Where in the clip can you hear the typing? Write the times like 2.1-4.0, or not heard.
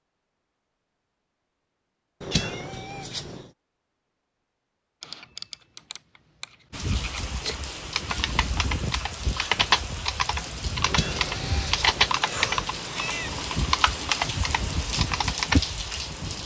5.0-15.6.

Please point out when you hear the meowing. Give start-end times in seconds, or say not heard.
2.2-3.5, 10.8-13.4.